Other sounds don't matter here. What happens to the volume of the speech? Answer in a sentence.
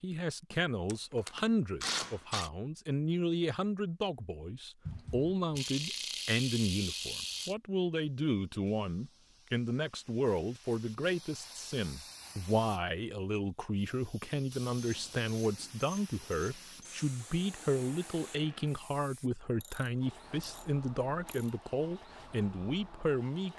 The loudness of the speech stays about the same.